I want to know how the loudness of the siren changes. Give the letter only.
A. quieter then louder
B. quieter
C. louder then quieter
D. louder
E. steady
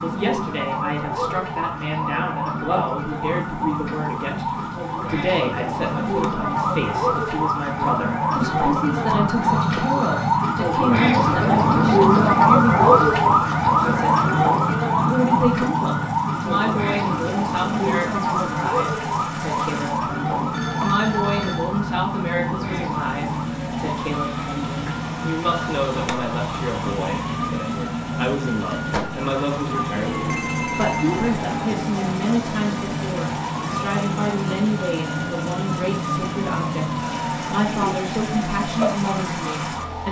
C.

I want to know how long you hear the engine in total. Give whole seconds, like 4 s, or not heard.
40 s.